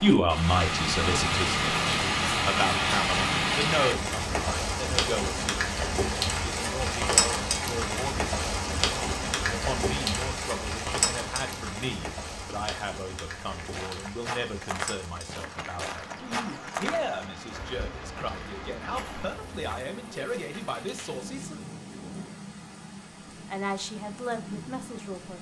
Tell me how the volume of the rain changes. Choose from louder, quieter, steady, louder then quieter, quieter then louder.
quieter.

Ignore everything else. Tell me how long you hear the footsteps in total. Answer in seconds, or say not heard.
6 s.